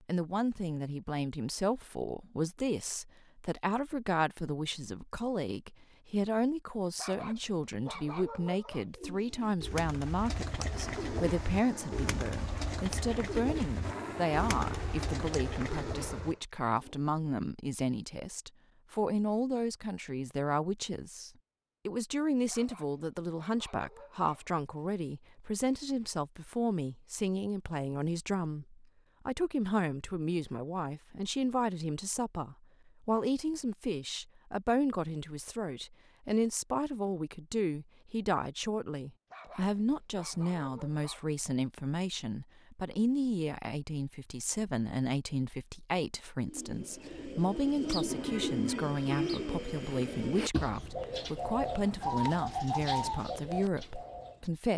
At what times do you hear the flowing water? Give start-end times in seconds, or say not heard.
not heard.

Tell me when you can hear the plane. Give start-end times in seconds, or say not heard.
10.6-16.4.